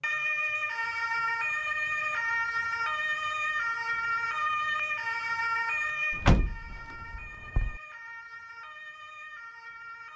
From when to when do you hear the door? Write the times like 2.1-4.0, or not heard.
6.1-7.8.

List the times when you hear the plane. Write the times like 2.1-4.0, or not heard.
not heard.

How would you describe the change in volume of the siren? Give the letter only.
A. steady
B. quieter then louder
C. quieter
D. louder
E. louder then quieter
C.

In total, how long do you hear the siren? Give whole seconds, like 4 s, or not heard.
10 s.